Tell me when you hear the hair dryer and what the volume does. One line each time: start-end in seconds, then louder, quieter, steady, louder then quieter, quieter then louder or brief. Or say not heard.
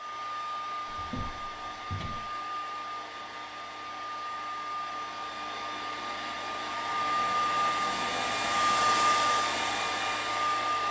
0.0-10.8 louder.